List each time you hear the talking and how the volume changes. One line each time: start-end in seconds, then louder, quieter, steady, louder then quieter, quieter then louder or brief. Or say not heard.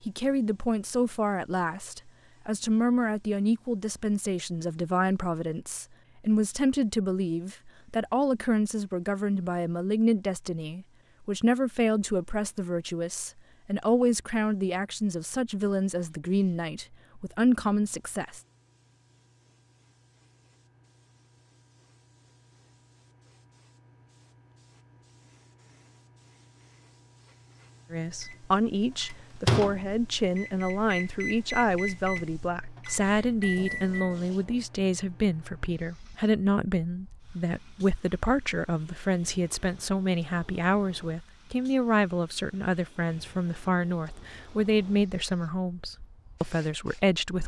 0.1-18.4 steady
27.9-47.4 steady.